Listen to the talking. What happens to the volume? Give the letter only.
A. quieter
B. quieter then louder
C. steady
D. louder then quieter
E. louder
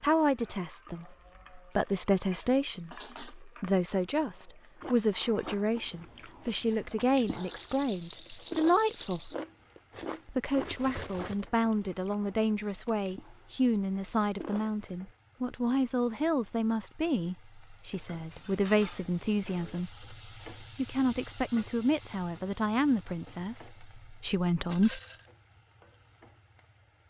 C.